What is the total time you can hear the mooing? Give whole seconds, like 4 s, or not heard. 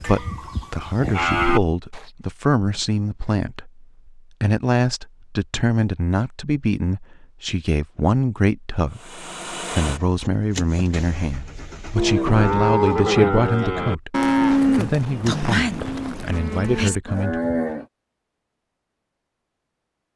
8 s.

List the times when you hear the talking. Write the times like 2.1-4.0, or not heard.
0.0-17.4.